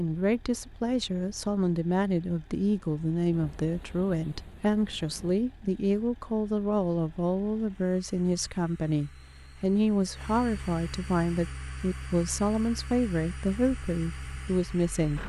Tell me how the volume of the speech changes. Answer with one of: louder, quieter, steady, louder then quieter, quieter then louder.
steady.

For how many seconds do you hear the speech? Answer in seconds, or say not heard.
15 s.